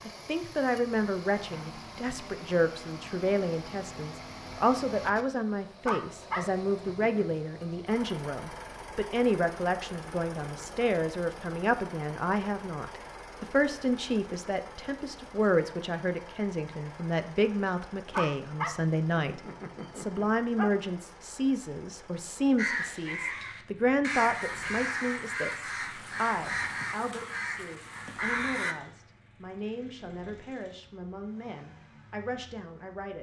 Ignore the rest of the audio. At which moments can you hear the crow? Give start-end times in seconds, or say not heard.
22.6-28.8.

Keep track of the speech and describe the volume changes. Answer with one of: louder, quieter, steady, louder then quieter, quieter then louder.
quieter.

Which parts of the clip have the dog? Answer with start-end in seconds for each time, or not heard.
5.8-7.2, 18.1-20.7.